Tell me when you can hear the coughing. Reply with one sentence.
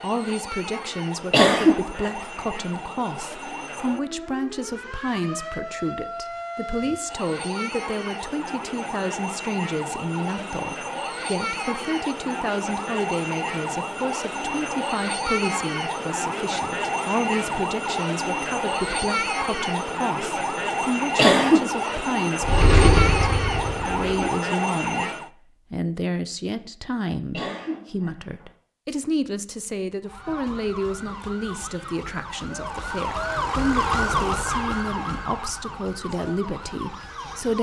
You can hear the coughing from 1.3 to 2.1 s, from 21.1 to 21.9 s and from 27.3 to 28.4 s.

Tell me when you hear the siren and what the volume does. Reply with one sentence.
The siren can be heard from 0.0 to 25.3 s, getting louder; and from 30.0 to 37.5 s, getting louder then quieter.